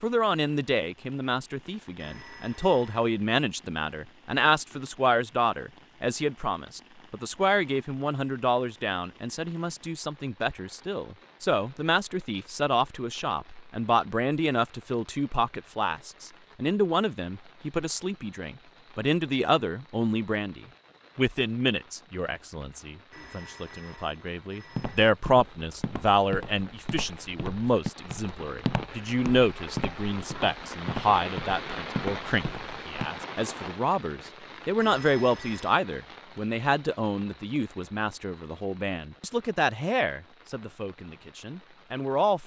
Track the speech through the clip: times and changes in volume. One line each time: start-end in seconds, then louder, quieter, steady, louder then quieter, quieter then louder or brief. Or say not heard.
0.0-42.4 steady.